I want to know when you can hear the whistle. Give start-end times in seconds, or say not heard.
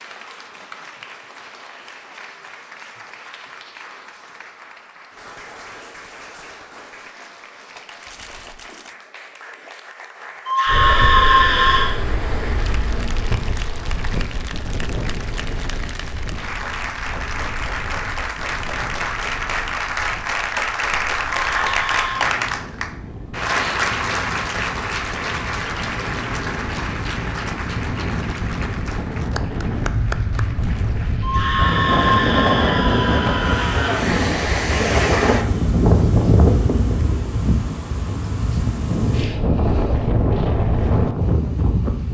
not heard.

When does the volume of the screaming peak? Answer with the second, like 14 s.
11 s.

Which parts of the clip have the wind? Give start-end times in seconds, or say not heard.
10.7-42.0.